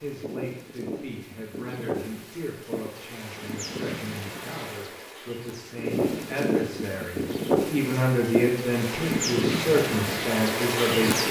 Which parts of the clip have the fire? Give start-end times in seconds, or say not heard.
not heard.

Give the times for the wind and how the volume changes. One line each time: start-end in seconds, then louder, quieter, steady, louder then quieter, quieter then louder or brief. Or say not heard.
0.0-11.2 louder.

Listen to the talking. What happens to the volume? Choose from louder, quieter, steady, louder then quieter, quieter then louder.
louder.